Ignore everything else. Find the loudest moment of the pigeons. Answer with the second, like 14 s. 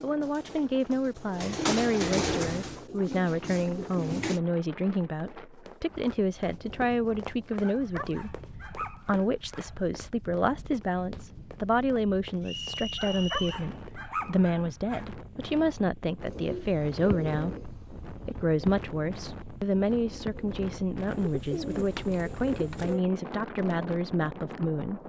2 s.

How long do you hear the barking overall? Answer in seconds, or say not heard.
4 s.